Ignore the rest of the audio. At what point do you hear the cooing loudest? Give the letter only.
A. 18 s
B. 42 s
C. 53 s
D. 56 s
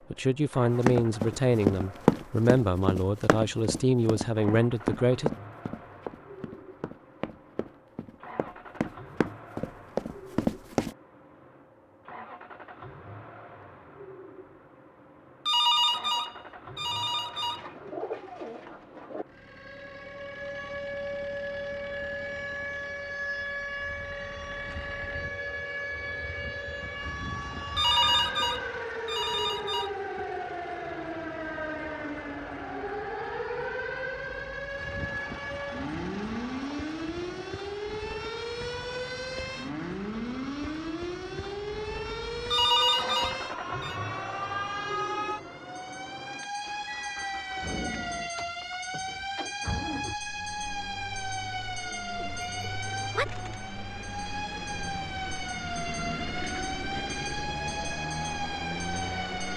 A.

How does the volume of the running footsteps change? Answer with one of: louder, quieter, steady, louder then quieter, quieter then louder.
quieter then louder.